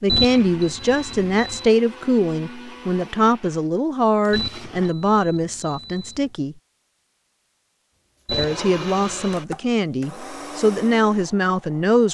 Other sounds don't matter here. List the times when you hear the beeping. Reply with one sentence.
You can hear the beeping from 0.1 to 1.6 s, from 4.3 to 6.3 s and from 8.2 to 9.4 s.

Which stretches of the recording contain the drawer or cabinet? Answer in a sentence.
You can't hear the drawer or cabinet here.